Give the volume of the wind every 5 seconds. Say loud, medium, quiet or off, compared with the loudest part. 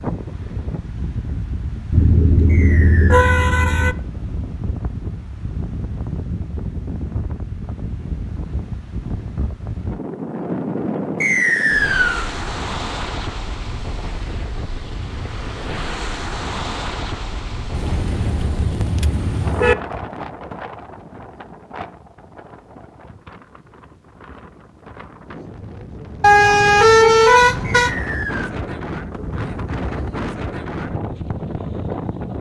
loud, loud, loud, loud, medium, loud, loud.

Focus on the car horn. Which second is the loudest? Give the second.
27 s.